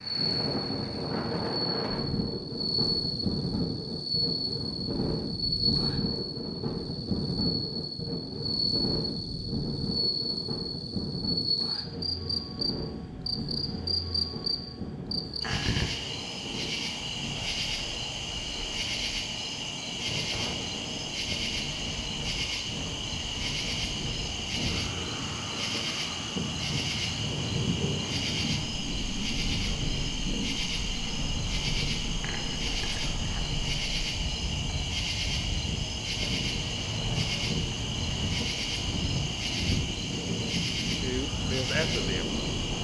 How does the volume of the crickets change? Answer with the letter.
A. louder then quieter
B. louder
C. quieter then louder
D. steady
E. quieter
D.